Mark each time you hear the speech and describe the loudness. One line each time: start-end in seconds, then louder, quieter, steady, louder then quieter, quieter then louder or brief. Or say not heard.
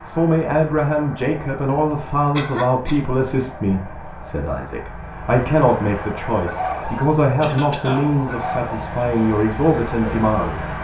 0.1-10.6 steady.